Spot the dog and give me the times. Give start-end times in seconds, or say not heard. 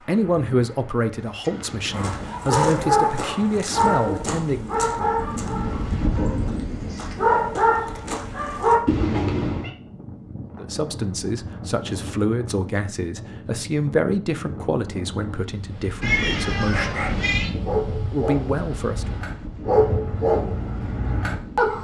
1.9-8.8, 16.7-21.7.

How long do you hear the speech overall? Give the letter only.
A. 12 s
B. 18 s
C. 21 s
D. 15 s
A.